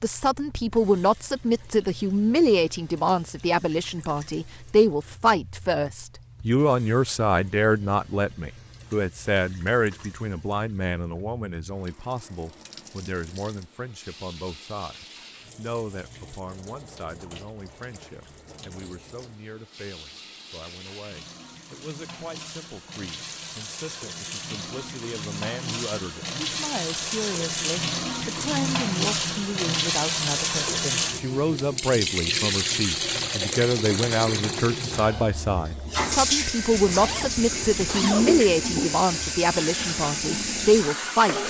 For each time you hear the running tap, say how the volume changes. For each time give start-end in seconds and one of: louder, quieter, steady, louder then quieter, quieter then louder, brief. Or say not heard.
0.0-41.4 louder.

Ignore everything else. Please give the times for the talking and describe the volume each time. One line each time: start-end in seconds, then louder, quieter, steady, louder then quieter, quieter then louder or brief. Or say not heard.
0.0-41.4 quieter then louder.